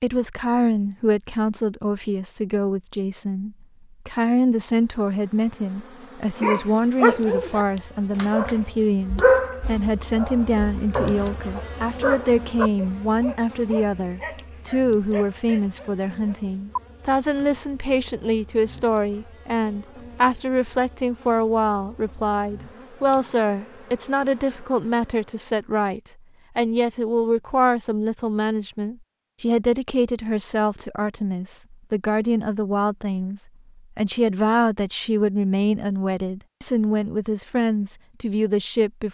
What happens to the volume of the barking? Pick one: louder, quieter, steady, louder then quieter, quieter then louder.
quieter.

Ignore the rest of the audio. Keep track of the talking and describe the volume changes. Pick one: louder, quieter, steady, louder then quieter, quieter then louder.
steady.